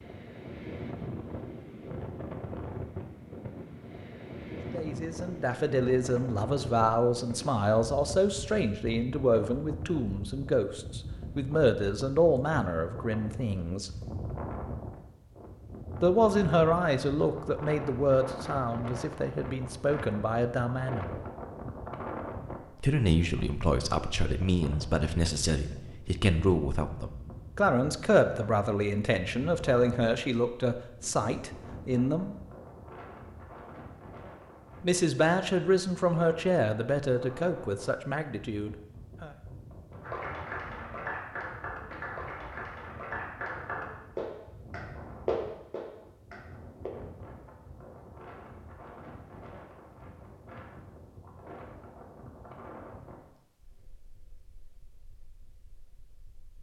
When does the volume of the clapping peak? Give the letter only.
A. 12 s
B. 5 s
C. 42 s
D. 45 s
D.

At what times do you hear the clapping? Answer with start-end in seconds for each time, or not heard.
40.0-46.9.